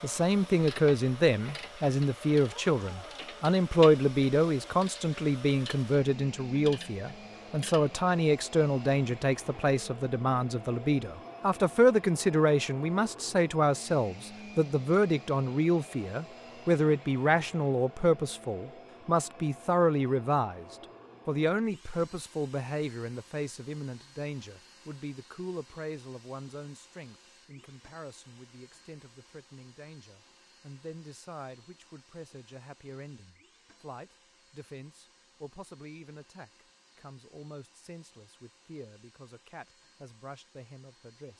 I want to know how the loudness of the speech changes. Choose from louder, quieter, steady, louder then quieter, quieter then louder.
quieter.